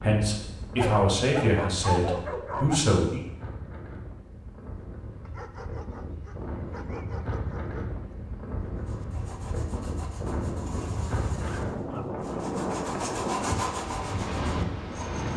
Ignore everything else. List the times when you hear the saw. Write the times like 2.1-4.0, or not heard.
8.8-15.3.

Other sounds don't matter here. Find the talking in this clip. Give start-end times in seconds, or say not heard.
0.0-3.2.